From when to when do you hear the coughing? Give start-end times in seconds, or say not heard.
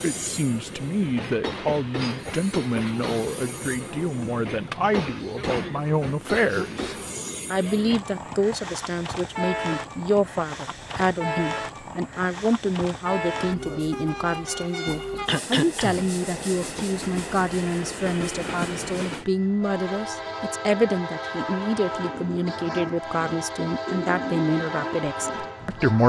15.2-16.2.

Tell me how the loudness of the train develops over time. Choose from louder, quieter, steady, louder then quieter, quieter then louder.
steady.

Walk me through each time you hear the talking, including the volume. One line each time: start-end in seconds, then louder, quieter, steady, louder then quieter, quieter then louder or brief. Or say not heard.
0.0-26.0 steady.